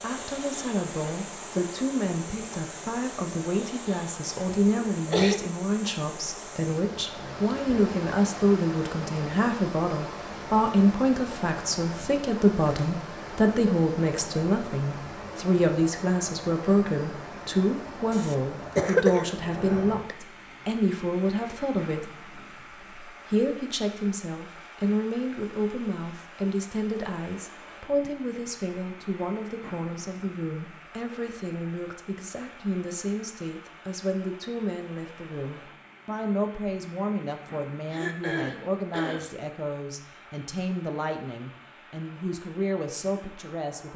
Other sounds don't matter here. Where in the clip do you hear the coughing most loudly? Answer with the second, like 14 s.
19 s.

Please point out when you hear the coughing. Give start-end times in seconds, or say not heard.
4.6-5.4, 18.1-20.1, 37.9-39.3.